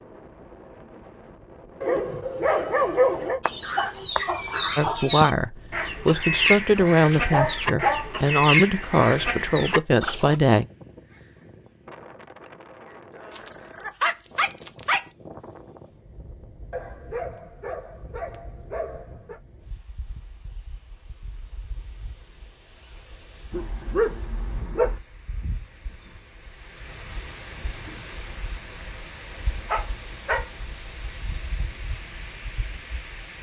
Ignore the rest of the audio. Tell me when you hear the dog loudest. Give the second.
3 s.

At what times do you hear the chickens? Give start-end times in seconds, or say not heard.
3.0-10.4.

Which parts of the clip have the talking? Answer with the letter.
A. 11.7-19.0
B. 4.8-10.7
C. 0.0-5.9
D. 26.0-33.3
B.